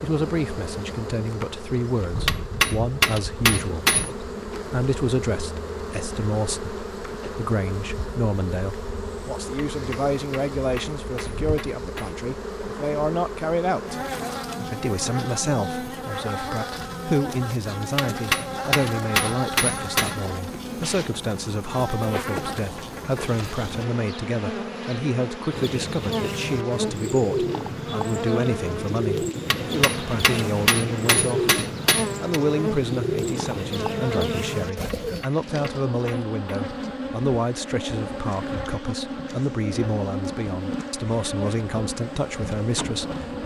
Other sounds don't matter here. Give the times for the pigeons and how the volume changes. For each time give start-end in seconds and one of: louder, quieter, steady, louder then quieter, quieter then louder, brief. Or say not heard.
25.5-35.2 steady.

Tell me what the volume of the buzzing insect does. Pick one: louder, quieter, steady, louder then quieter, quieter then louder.
steady.